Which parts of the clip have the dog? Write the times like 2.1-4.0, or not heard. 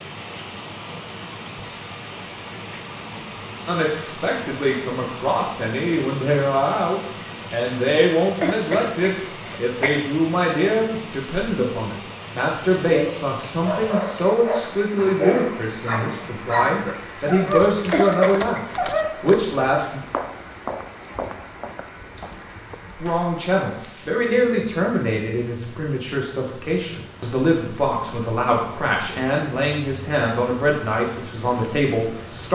12.9-19.1.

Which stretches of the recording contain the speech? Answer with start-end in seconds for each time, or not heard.
3.6-20.0, 23.0-32.5.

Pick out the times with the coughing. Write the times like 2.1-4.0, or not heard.
8.4-10.0, 17.8-18.6.